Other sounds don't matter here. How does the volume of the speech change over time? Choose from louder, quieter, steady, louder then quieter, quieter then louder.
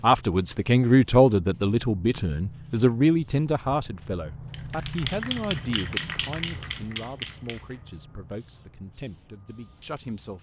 quieter.